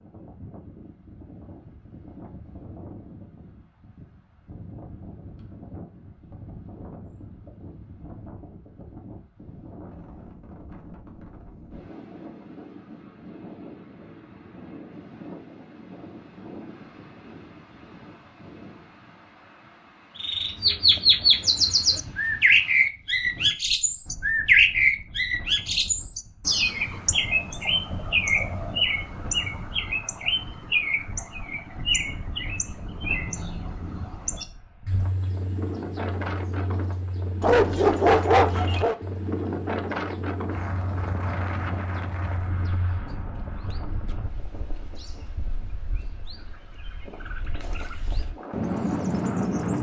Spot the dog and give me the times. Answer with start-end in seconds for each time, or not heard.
37.4-39.0.